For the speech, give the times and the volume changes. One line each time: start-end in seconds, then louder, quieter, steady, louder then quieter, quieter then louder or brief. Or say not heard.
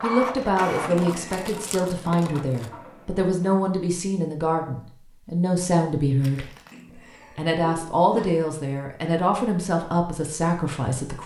0.0-11.2 steady.